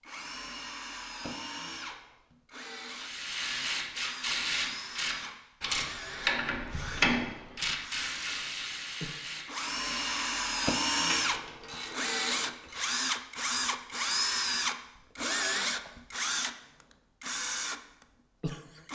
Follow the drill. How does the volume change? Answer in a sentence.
The loudness of the drill goes up.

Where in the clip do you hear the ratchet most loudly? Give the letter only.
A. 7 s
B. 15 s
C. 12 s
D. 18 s
A.